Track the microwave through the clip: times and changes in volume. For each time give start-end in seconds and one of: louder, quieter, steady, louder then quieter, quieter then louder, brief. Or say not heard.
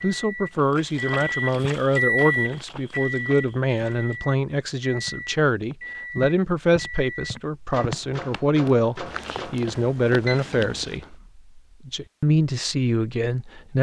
0.0-10.8 quieter.